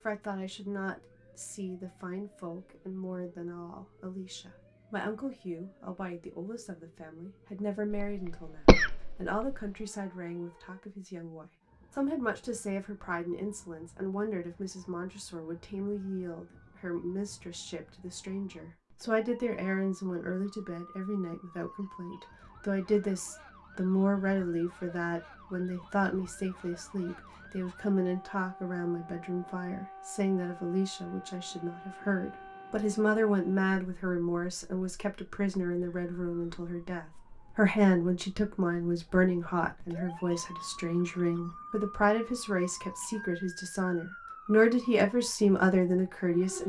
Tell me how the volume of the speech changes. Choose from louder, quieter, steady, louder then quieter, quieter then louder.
louder.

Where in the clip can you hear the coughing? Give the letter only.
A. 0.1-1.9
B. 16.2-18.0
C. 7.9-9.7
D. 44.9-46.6
C.